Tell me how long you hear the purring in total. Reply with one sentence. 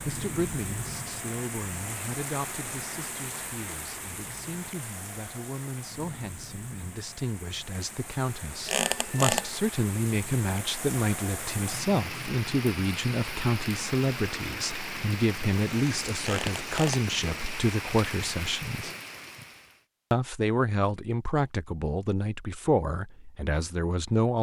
The purring can't be heard in this clip.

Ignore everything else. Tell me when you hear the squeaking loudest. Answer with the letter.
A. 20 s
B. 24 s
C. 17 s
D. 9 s
D.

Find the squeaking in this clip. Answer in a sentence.
You can hear the squeaking from 8.7 to 9.5 s and from 16.2 to 17.1 s.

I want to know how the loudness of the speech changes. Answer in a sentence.
The loudness of the speech goes up.